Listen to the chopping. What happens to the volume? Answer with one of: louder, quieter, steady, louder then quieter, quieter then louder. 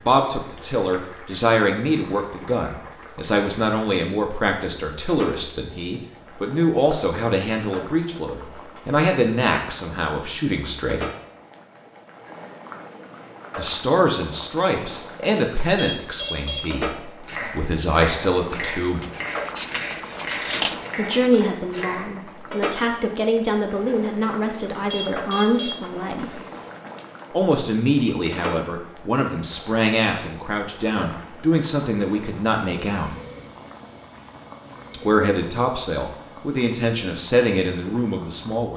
steady.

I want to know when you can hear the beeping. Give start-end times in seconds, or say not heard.
15.6-16.6, 24.7-26.3.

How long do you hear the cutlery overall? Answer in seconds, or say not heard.
2 s.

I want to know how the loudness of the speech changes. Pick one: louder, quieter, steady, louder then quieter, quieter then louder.
steady.